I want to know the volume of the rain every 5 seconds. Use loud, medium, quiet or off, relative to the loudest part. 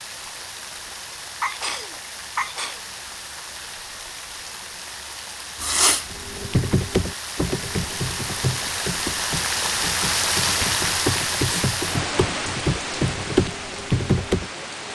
medium, loud, loud.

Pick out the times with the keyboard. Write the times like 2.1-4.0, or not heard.
6.2-14.4.